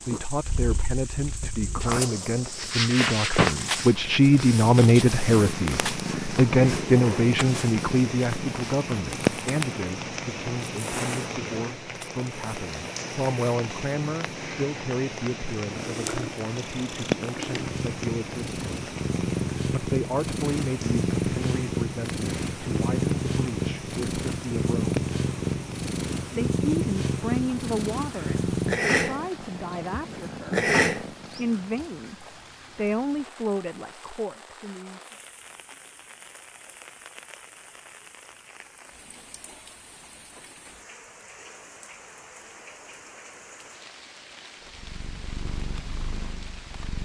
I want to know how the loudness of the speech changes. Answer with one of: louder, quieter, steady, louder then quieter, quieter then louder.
quieter.